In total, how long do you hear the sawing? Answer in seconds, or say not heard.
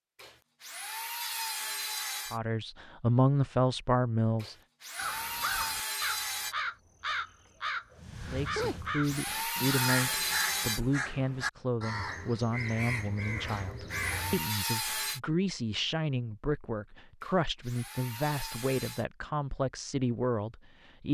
10 s.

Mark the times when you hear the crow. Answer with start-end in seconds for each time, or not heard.
5.0-14.4.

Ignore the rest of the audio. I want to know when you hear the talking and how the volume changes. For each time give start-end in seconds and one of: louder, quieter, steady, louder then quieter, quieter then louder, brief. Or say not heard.
2.3-4.5 brief
8.2-21.0 steady.